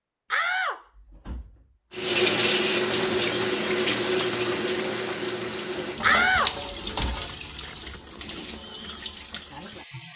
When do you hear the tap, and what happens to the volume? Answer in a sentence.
The tap can be heard from 1.9 to 10.1 s, getting quieter.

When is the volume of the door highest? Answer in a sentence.
The volume of the door peaks at 6 seconds.